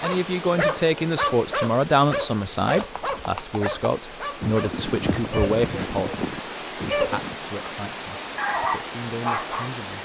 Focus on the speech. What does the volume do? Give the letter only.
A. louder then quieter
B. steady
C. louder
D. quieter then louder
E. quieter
E.